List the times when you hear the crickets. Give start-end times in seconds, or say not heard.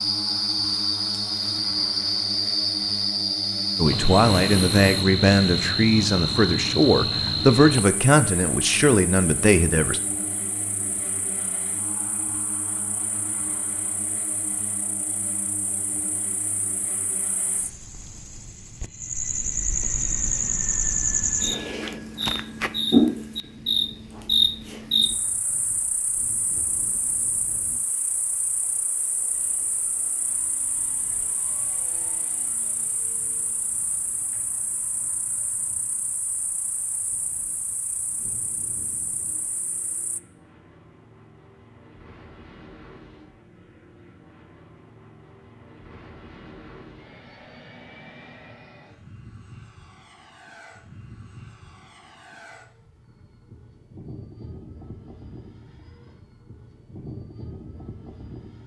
0.0-40.2.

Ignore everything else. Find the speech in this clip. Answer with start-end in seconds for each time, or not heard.
3.8-10.0.